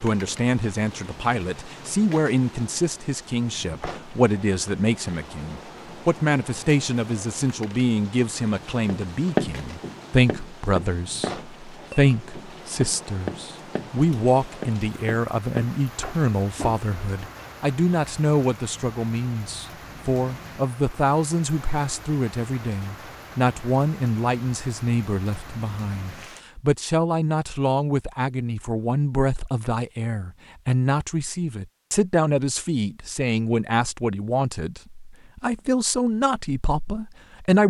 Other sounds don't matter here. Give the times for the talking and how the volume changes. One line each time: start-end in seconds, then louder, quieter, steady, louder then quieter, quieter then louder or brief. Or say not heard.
0.0-37.6 steady.